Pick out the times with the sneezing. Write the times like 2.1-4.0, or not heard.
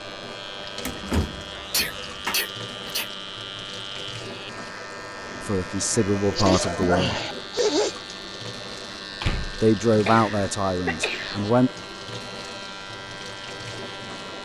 1.7-3.0, 6.1-8.0, 10.1-11.4.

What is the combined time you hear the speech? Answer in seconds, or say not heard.
4 s.